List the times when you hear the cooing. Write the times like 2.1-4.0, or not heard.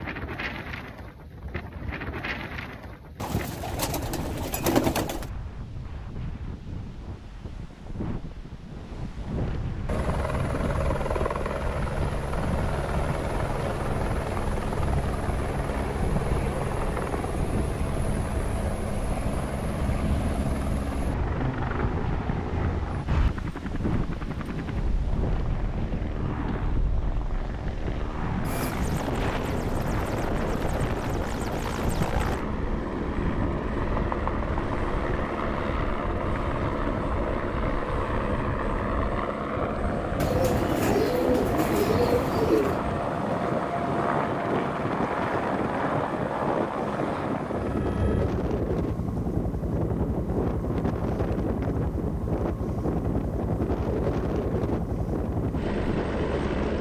3.2-5.2, 40.1-42.8.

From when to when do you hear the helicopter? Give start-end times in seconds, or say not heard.
9.8-56.7.